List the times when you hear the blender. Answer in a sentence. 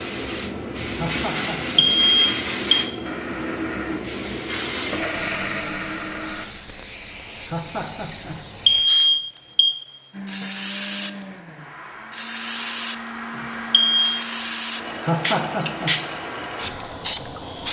You can hear the blender from 3.0 to 6.5 s and from 10.1 to 17.6 s.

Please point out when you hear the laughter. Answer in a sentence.
The laughter can be heard from 0.8 to 1.9 s, from 7.3 to 8.4 s and from 14.9 to 15.9 s.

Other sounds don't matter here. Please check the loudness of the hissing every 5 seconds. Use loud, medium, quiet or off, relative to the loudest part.
loud, medium, loud, loud.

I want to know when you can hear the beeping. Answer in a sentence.
You can hear the beeping from 1.8 to 2.9 s, from 8.7 to 9.8 s and from 13.7 to 14.2 s.